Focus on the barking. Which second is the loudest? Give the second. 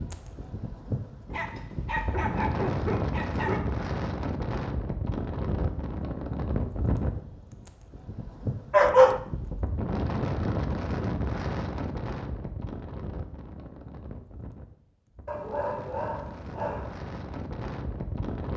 9 s.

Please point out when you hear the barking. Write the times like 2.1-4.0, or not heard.
1.3-3.6, 8.7-9.2, 15.2-17.0.